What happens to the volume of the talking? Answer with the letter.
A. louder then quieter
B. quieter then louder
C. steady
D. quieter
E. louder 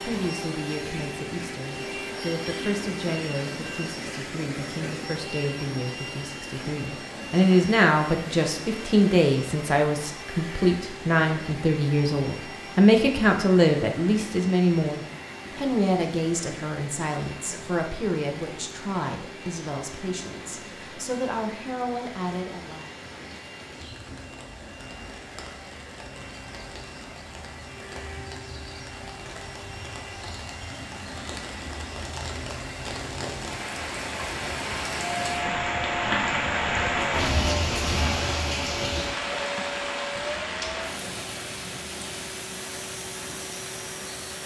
A.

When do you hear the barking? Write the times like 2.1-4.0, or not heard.
not heard.